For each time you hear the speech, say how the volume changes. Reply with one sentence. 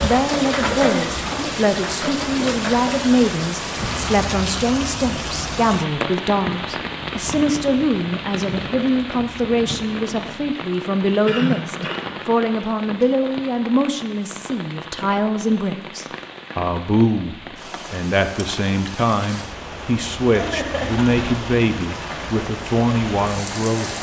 You can hear the speech from 0.0 to 23.9 s, at a steady volume.